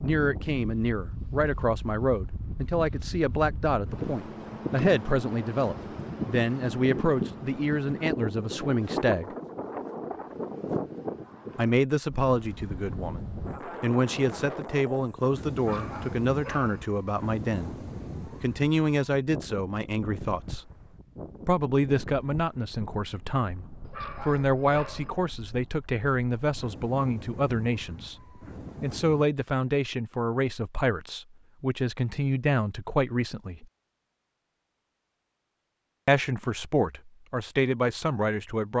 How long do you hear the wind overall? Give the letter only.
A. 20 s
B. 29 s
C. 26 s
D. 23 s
B.